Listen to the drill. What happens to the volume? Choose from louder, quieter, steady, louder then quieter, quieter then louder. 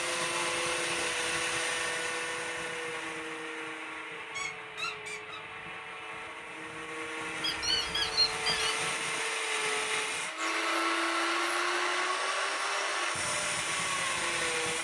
quieter then louder.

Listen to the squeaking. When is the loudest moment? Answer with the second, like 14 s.
8 s.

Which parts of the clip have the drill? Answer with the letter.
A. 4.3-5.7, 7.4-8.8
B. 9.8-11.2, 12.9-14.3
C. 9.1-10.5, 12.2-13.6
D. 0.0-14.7
D.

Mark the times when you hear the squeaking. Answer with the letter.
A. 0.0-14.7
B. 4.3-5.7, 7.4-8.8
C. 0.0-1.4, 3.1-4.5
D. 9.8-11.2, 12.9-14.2
B.